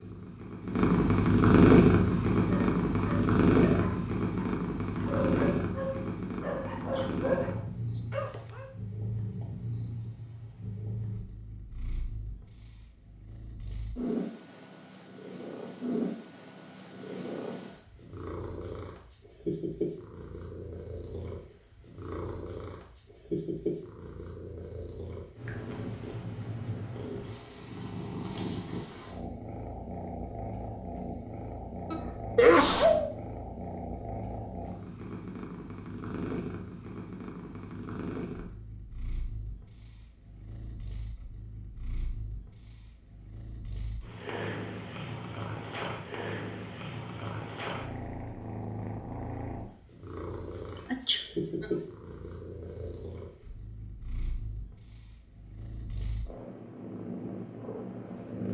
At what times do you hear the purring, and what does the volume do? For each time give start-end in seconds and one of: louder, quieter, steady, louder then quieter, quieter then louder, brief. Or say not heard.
0.0-58.5 quieter.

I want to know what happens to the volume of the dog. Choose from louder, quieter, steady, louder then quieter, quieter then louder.
quieter then louder.